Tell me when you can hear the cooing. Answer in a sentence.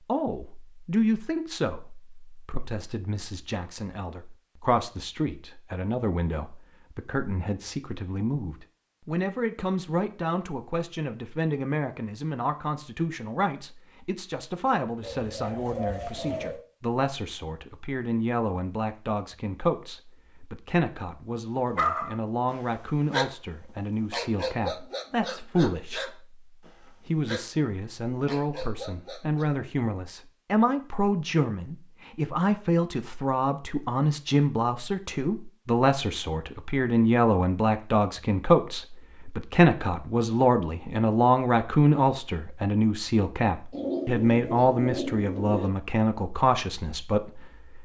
The cooing can be heard from 15.0 to 16.6 s and from 43.7 to 45.7 s.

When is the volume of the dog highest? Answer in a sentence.
The volume of the dog peaks at 22 seconds.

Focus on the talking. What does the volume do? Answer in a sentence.
The volume of the talking goes up.